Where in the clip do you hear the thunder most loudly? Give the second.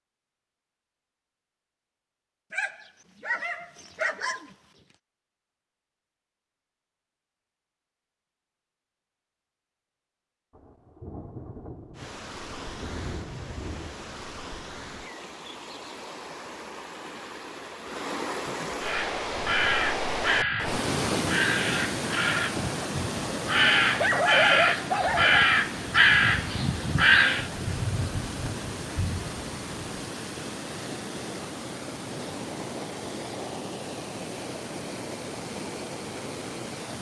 28 s.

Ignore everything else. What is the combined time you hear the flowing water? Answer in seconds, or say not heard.
25 s.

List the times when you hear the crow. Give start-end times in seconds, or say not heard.
18.8-27.5.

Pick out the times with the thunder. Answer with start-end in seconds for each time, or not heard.
10.6-14.2, 27.4-30.1.